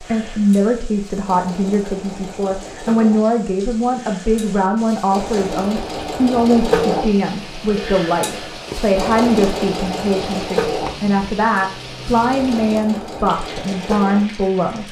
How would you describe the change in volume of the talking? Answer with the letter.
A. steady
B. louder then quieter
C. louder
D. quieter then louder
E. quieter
A.